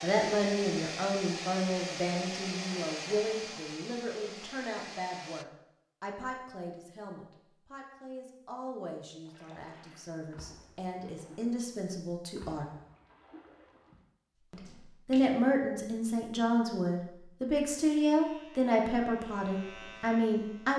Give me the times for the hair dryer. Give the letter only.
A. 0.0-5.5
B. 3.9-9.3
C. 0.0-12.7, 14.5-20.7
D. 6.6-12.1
A.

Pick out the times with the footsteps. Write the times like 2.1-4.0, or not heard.
not heard.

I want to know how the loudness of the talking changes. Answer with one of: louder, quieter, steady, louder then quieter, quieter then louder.
quieter then louder.